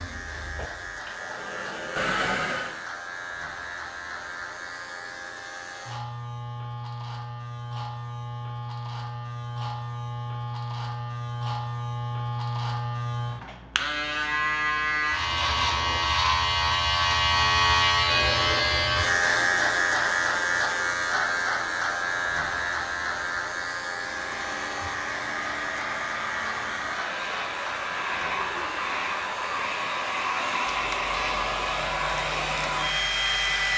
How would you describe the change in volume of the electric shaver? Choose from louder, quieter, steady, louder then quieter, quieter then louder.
louder then quieter.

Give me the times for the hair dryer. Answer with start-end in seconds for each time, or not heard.
0.0-2.9, 23.9-33.7.